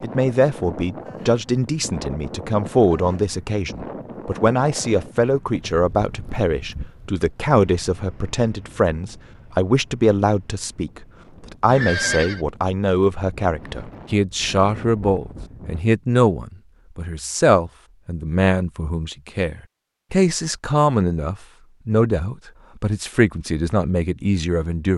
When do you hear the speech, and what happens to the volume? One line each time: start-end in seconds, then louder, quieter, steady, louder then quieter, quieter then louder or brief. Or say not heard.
0.0-24.9 steady.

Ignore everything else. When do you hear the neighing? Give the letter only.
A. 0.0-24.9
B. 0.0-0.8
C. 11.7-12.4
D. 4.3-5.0
C.